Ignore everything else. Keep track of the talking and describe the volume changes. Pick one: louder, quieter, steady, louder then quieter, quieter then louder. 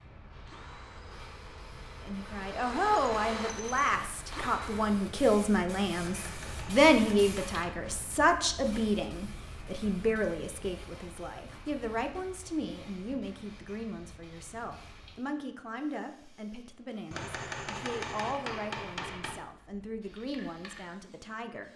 quieter.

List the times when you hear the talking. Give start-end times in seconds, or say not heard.
2.0-21.7.